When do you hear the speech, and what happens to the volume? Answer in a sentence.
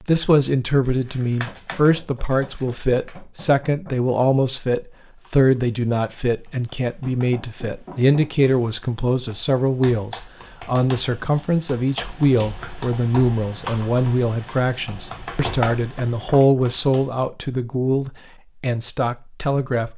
You can hear the speech from 0.0 to 19.9 s, at a steady volume.